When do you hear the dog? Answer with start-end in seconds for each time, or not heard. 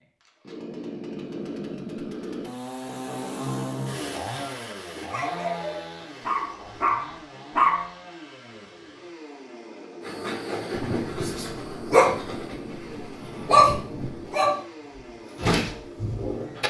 5.0-7.8, 10.1-16.6.